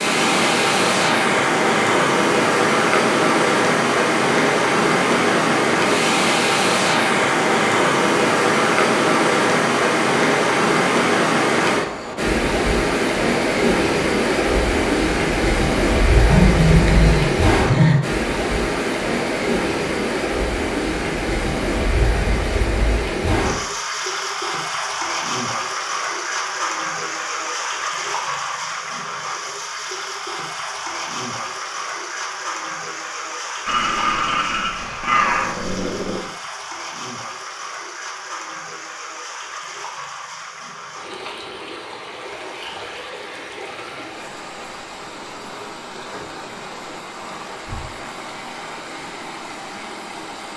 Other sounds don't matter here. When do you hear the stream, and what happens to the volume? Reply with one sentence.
You can hear the stream from 0.0 to 50.5 s, getting quieter.